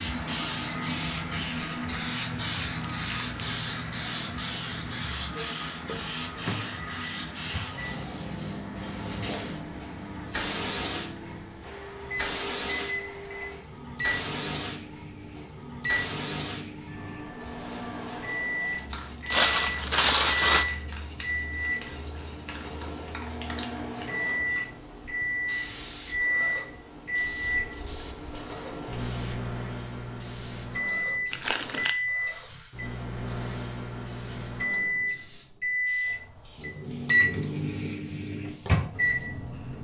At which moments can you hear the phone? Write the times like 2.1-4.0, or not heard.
not heard.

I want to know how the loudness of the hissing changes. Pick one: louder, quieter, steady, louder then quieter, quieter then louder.
quieter.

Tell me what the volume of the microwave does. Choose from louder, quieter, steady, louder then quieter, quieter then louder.
louder.